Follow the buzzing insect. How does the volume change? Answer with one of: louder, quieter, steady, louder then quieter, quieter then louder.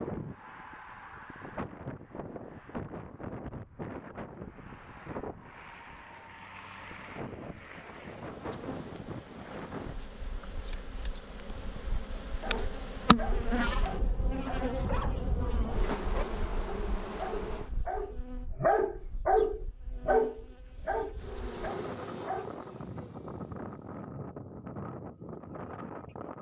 louder then quieter.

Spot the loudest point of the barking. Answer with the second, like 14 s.
19 s.